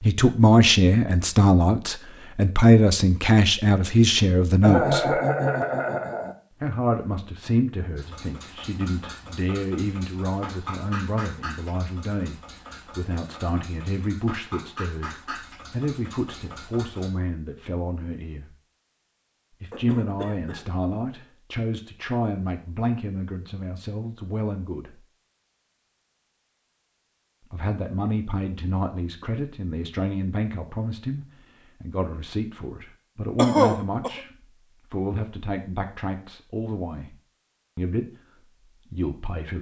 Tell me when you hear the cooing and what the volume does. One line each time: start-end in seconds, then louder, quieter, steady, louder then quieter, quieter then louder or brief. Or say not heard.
not heard.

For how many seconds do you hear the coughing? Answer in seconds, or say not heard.
4 s.